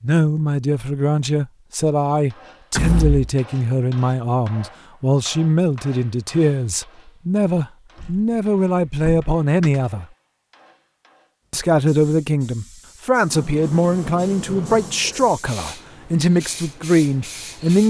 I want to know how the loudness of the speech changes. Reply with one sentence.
The loudness of the speech stays about the same.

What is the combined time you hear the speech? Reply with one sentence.
You can hear the speech for 16 seconds altogether.